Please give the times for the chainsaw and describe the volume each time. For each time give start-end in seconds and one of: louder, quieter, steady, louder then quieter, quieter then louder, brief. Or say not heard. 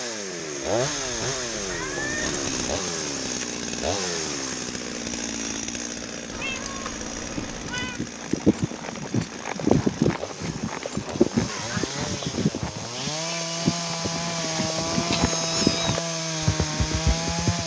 0.0-17.6 quieter then louder.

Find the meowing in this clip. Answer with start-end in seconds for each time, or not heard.
0.8-2.8, 6.3-8.0, 15.2-15.9.